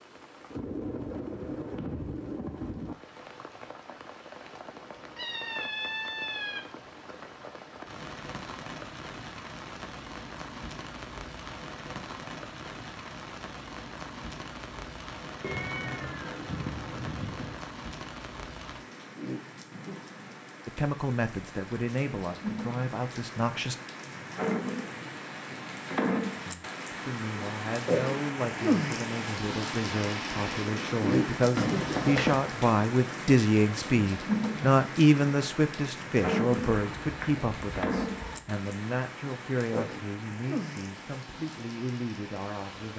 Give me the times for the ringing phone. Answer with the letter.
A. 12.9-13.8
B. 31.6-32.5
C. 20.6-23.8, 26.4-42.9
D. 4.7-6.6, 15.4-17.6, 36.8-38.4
B.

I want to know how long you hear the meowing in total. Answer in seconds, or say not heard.
6 s.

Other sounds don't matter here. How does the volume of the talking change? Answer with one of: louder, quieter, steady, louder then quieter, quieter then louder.
louder then quieter.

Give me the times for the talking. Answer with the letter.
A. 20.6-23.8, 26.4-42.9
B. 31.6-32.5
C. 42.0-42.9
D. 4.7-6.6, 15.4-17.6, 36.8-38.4
A.